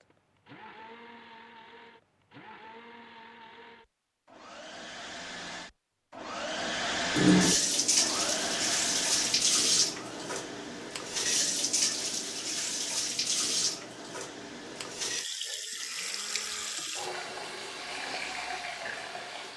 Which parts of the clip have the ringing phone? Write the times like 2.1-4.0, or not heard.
not heard.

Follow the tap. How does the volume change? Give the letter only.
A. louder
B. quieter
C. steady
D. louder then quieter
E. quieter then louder
B.